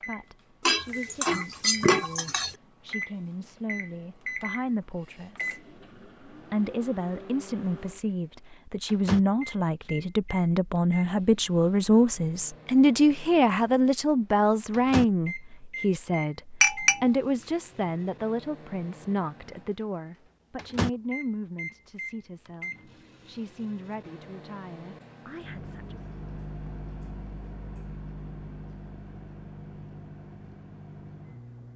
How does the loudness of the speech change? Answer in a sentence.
The volume of the speech goes up, then down.